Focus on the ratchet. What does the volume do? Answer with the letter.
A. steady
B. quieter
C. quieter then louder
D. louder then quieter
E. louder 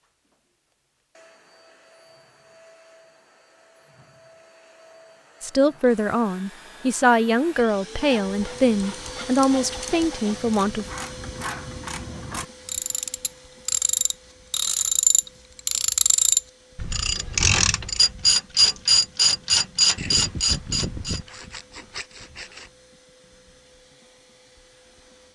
E.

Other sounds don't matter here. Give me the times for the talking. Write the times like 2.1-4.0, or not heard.
5.4-10.8.